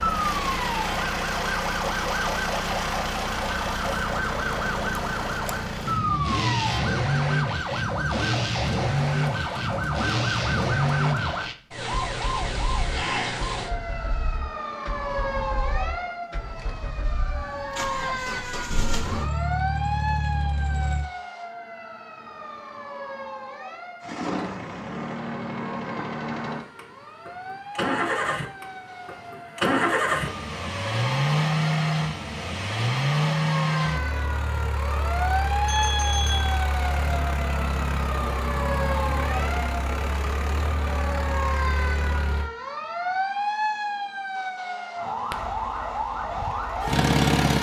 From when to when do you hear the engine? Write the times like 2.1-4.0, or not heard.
0.0-21.1, 24.0-42.5, 45.3-47.5.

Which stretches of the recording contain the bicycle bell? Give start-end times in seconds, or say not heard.
35.6-36.5.